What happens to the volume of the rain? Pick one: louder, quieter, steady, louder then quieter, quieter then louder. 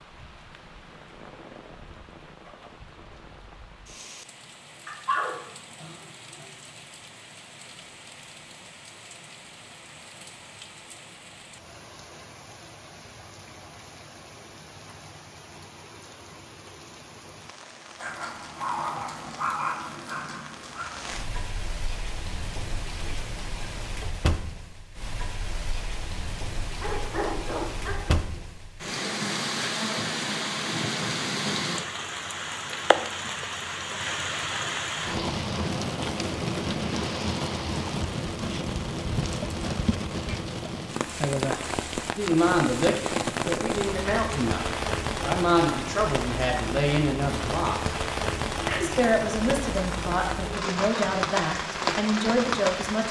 louder.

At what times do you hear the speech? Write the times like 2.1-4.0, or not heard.
42.1-48.0, 48.8-53.0.